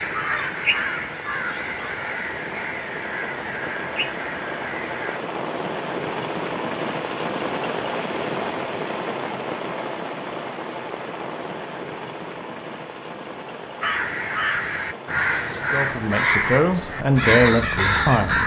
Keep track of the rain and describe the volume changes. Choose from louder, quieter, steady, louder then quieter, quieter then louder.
louder then quieter.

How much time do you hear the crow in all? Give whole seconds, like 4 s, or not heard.
10 s.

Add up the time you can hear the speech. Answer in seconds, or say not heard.
3 s.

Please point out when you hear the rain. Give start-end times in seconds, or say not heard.
0.0-18.4.